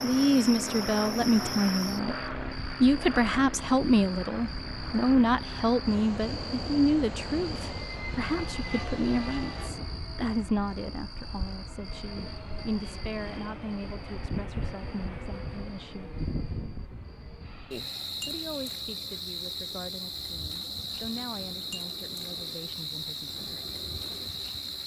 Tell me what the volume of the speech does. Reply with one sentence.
The loudness of the speech goes down.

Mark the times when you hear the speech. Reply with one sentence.
The speech can be heard from 0.0 to 16.1 s and from 18.2 to 23.6 s.